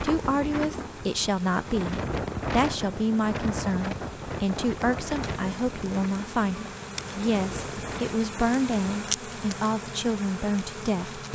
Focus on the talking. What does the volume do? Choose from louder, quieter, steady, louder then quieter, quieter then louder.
steady.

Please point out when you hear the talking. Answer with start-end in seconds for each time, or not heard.
0.0-11.3.